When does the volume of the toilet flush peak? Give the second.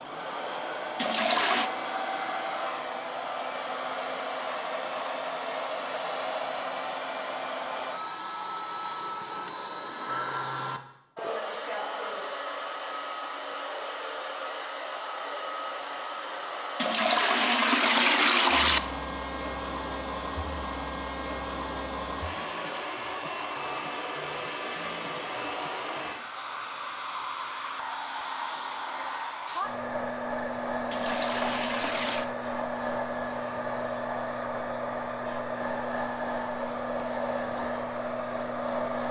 18 s.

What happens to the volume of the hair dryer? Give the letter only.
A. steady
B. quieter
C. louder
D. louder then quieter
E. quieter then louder
A.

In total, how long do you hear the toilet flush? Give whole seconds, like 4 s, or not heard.
4 s.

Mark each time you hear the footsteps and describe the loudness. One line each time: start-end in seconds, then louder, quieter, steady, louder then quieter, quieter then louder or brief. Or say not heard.
not heard.